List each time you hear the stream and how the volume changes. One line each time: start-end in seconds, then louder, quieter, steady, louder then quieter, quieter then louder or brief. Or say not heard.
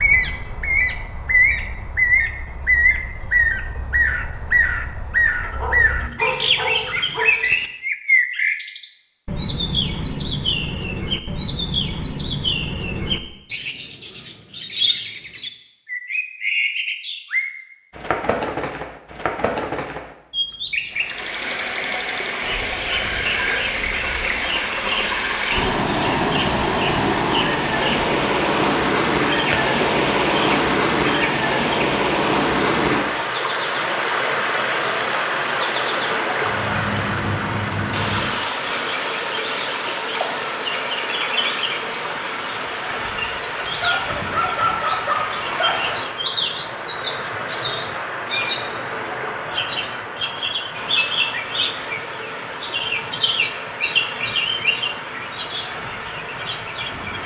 20.9-57.2 quieter.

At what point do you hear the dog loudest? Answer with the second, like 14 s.
45 s.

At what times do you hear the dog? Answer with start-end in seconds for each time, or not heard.
5.4-7.2, 43.8-46.0.